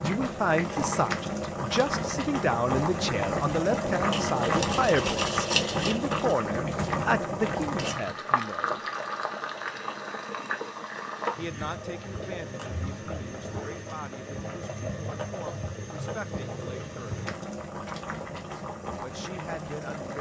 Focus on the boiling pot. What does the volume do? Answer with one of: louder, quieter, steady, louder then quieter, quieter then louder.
quieter.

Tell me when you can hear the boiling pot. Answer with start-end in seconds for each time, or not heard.
0.0-20.1.